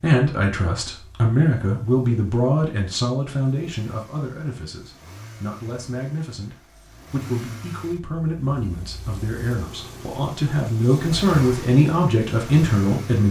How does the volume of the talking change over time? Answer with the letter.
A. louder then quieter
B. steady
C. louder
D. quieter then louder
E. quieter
D.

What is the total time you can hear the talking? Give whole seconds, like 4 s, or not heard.
13 s.